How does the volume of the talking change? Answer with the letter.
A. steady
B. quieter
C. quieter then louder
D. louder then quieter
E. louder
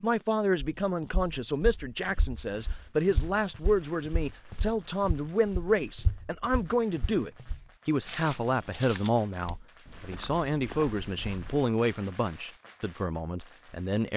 A.